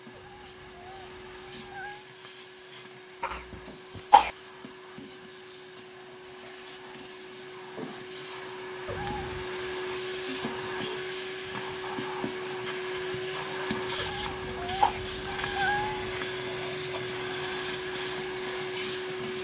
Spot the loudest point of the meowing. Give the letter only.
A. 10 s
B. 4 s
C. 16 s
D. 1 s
C.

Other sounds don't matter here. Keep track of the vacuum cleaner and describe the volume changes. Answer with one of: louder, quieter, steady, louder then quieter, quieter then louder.
louder.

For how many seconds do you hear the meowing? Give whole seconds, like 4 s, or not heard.
5 s.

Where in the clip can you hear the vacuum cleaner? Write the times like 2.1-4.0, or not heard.
0.0-19.3.